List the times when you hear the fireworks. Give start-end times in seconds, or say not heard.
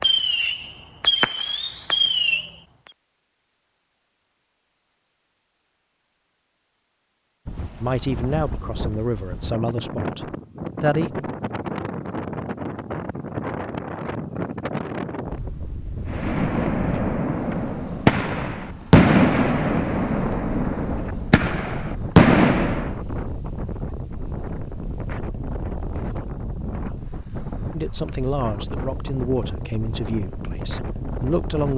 0.0-2.5, 16.1-22.9.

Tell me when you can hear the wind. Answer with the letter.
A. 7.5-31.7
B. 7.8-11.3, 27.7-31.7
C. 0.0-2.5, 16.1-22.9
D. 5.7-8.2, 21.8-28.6
A.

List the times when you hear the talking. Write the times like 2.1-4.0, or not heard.
7.8-11.3, 27.7-31.7.